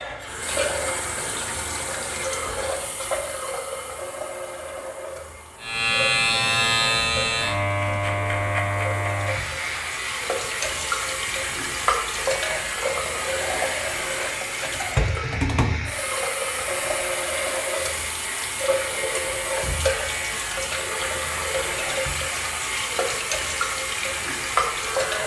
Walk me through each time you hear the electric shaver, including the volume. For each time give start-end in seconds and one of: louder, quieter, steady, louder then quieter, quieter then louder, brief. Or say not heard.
5.6-25.2 quieter.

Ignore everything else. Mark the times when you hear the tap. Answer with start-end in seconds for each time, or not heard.
0.0-25.2.